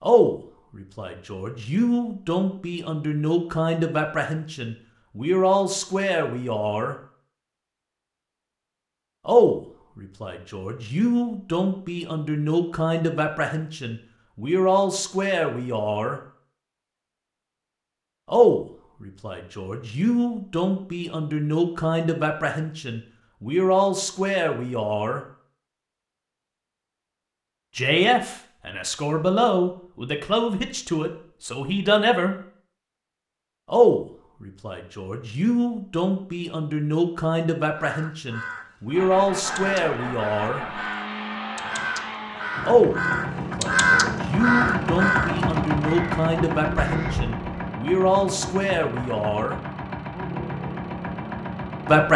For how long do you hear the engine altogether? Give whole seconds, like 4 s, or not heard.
13 s.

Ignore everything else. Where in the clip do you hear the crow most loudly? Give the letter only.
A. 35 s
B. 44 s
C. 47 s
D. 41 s
B.